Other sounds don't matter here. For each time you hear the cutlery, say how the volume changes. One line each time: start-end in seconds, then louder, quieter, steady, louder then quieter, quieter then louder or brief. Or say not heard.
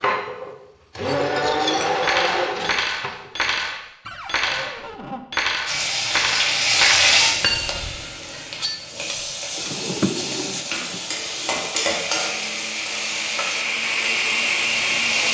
1.1-9.8 quieter.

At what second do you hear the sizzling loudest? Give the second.
7 s.